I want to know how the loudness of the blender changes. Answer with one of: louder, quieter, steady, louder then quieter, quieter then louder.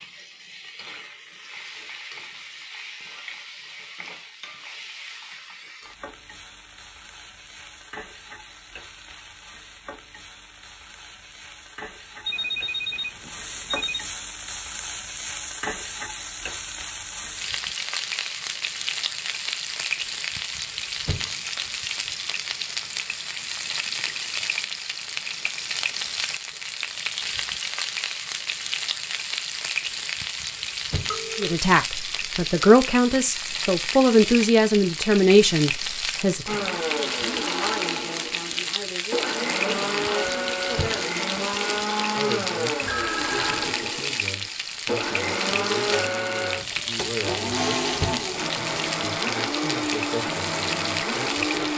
steady.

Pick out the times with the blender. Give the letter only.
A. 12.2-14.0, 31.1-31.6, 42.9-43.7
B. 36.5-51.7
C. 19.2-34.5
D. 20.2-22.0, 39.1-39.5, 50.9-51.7
B.